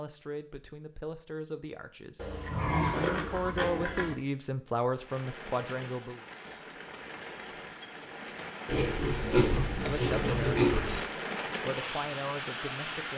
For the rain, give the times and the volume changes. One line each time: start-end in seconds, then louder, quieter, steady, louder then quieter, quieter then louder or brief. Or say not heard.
5.0-13.1 louder.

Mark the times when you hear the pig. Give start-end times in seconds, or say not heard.
2.1-4.2, 8.7-11.0.